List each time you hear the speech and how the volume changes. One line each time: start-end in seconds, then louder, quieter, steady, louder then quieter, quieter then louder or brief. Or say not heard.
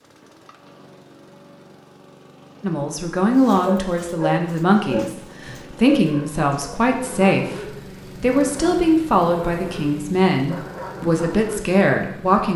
2.6-12.5 steady.